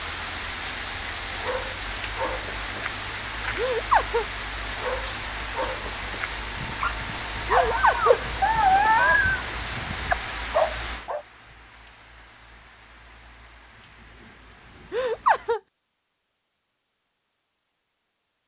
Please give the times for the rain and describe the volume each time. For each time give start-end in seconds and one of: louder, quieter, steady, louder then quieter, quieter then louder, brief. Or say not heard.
0.0-15.6 quieter.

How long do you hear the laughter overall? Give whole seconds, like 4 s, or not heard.
2 s.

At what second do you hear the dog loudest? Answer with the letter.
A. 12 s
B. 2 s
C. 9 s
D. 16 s
C.